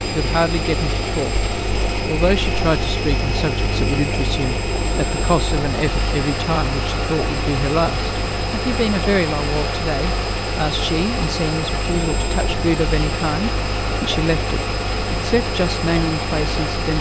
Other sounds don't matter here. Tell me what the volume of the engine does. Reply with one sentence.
The volume of the engine stays about the same.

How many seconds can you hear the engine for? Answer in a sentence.
The engine can be heard for 17 seconds in total.